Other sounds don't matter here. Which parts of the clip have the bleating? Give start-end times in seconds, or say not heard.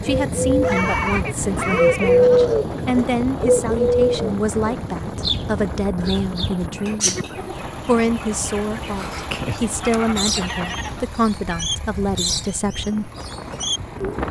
0.6-2.6, 6.0-7.7, 9.7-11.7.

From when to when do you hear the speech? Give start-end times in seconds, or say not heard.
0.0-7.2, 7.8-13.1.